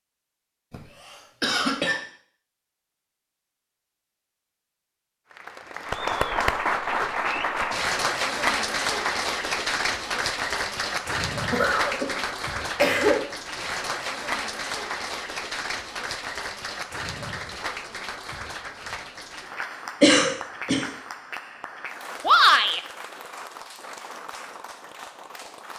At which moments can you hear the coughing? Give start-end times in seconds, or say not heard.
0.7-2.0, 11.4-13.2, 20.0-20.9.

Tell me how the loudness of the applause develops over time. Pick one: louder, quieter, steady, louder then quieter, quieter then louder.
quieter.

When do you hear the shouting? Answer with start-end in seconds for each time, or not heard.
22.2-22.8.